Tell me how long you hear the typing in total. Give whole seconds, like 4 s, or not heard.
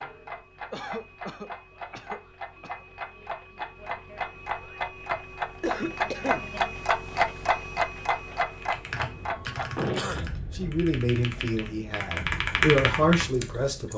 5 s.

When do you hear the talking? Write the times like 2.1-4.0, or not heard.
10.6-13.9.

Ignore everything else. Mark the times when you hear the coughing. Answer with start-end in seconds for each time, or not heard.
0.7-2.9, 5.6-6.5, 9.4-10.3.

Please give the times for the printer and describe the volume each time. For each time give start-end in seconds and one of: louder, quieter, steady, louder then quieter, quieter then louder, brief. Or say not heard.
not heard.